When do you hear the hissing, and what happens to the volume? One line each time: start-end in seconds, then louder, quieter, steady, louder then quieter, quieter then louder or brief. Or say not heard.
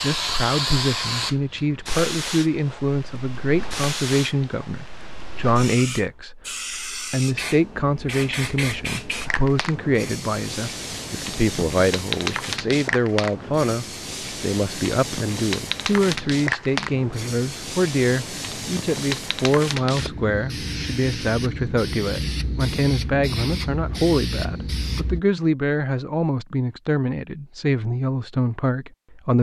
0.0-25.2 steady.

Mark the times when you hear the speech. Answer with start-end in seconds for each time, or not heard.
0.0-29.3.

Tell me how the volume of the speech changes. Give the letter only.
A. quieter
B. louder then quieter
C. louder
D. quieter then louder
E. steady
E.